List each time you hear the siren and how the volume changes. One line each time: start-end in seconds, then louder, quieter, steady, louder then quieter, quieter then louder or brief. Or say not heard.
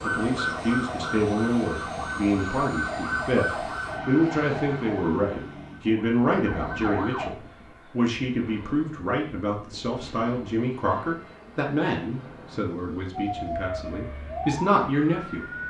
0.0-7.3 quieter
13.1-15.6 brief.